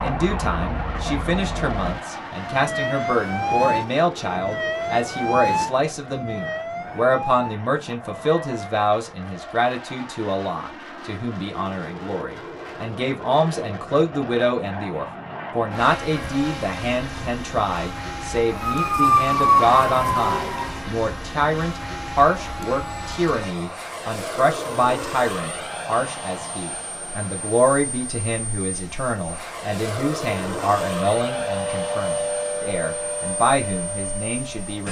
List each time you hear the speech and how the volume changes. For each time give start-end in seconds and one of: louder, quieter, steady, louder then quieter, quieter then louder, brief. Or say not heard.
0.0-34.8 steady.